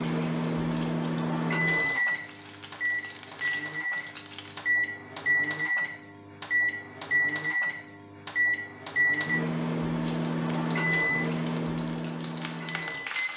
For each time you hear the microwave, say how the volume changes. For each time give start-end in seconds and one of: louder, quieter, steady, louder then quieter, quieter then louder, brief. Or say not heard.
0.0-13.3 steady.